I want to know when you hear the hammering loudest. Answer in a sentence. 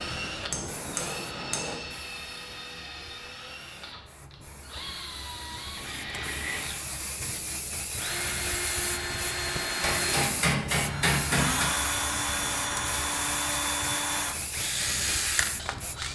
The loudest moment of the hammering is at 11 seconds.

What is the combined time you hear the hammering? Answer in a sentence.
You can hear the hammering for 3 seconds altogether.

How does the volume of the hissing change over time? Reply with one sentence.
The loudness of the hissing goes up.